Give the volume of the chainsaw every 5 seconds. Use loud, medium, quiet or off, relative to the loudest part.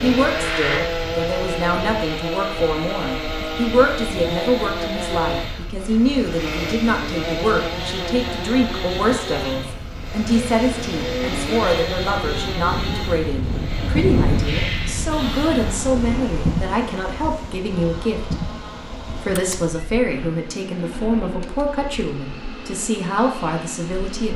loud, loud, loud, medium, medium.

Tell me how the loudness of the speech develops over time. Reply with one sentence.
The loudness of the speech stays about the same.